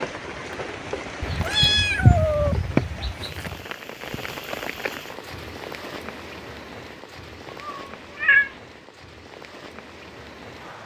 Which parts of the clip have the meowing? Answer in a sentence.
You can hear the meowing from 1.2 to 3.5 s and from 7.5 to 8.5 s.